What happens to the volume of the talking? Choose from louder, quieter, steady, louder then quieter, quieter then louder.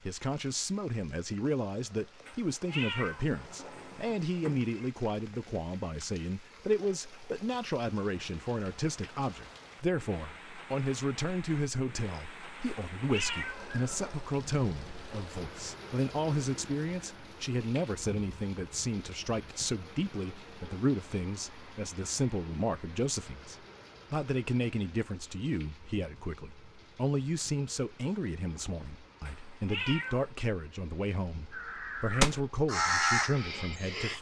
steady.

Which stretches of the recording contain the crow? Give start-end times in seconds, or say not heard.
31.5-34.1.